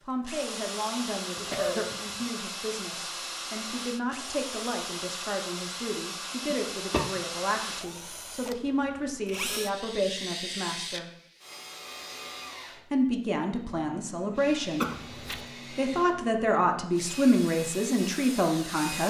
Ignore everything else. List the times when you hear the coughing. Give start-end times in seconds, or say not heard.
1.4-2.3, 6.5-7.6, 14.8-15.5.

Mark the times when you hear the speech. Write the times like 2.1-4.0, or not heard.
0.0-11.1, 12.9-14.9, 15.7-19.0.